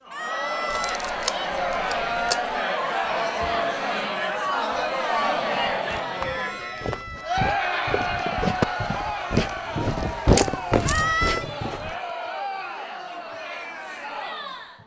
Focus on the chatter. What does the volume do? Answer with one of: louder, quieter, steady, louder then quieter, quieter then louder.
quieter.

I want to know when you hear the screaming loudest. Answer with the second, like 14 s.
11 s.